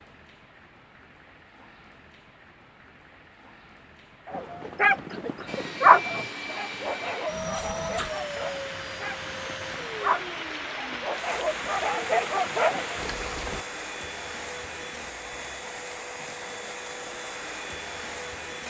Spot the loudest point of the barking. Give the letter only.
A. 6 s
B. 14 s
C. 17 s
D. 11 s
A.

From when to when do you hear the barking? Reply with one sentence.
You can hear the barking from 4.2 to 13.2 s.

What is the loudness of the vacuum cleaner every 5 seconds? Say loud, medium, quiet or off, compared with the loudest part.
off, loud, loud, loud.